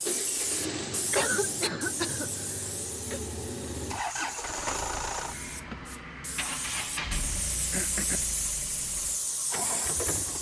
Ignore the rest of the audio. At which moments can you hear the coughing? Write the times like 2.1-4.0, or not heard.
1.1-3.2, 7.2-8.3.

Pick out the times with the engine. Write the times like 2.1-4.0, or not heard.
0.0-10.3.